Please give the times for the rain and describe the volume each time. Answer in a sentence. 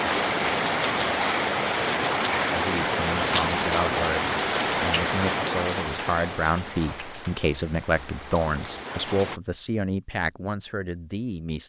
The rain can be heard from 0.0 to 9.4 s, getting quieter.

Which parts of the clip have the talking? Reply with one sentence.
The talking can be heard from 2.5 to 11.6 s.